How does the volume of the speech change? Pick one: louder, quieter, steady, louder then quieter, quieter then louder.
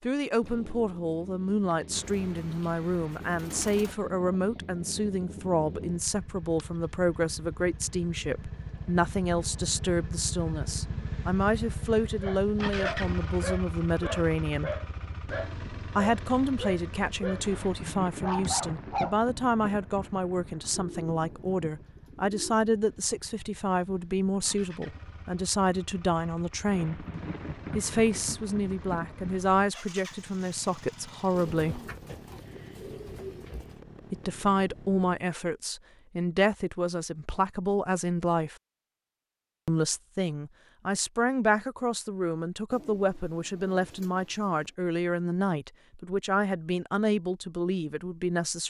steady.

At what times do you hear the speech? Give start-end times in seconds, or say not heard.
0.0-14.8, 15.9-27.1, 27.7-31.9, 34.1-38.5, 39.6-48.6.